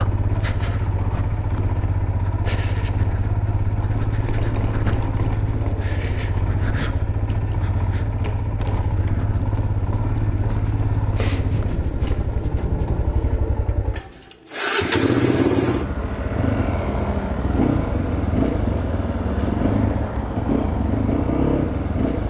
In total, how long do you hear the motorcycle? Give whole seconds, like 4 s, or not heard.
22 s.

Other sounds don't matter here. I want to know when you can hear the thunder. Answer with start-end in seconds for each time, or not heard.
10.8-13.4.